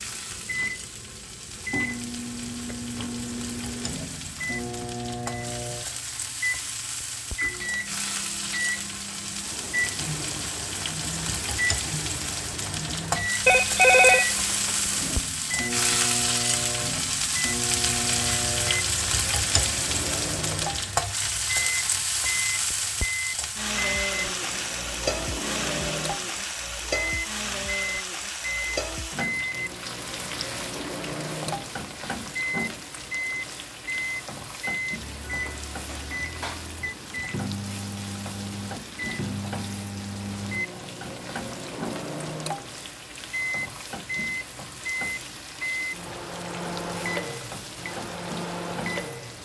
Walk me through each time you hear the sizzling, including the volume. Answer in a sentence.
You can hear the sizzling from 0.0 to 49.3 s, getting louder then quieter.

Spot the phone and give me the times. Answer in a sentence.
The phone can be heard from 13.4 to 15.2 s.